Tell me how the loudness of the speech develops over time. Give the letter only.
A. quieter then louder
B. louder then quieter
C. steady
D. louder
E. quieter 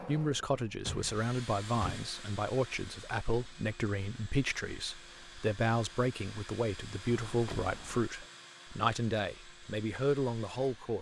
C.